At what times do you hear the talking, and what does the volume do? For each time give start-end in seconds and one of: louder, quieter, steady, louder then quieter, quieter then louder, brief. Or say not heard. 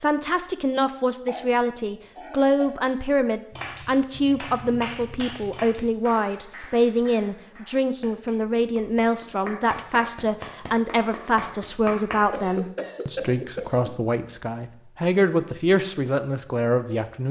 0.0-17.2 steady.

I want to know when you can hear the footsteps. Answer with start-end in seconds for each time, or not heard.
not heard.